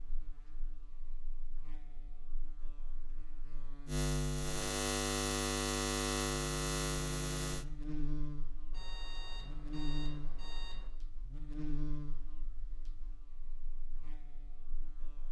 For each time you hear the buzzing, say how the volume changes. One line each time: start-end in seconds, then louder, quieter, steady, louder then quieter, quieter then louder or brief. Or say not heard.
0.0-15.2 louder then quieter.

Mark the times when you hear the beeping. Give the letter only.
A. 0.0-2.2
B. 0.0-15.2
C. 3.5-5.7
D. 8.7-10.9
D.